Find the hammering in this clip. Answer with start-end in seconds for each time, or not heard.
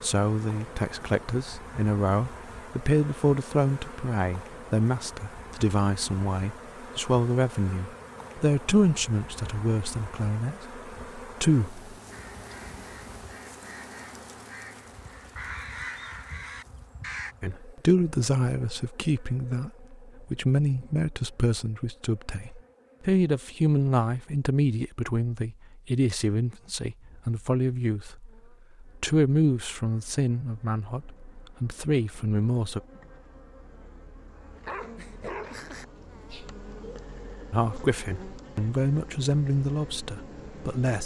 not heard.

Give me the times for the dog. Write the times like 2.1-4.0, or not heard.
34.5-37.5.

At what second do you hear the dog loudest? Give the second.
35 s.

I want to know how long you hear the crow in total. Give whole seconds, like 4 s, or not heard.
5 s.